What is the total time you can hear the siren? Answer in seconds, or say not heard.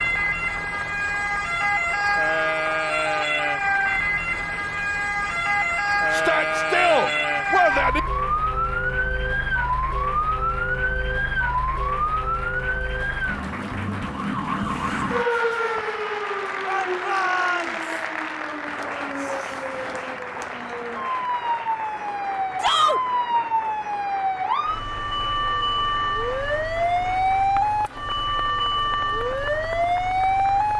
31 s.